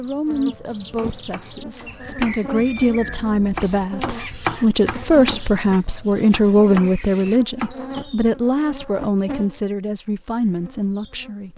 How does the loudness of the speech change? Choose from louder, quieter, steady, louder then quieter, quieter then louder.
louder then quieter.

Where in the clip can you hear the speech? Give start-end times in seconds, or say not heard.
0.0-11.5.